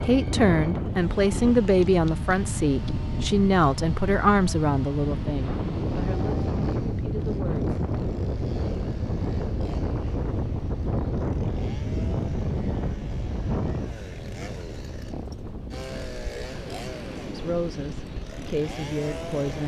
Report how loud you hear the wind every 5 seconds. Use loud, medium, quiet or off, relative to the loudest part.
loud, loud, loud, medium.